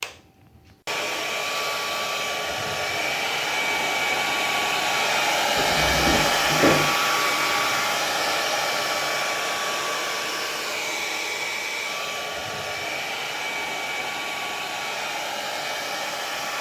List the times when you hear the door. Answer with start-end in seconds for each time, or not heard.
5.5-7.0.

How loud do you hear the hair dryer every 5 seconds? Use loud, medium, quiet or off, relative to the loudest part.
loud, loud, medium, medium.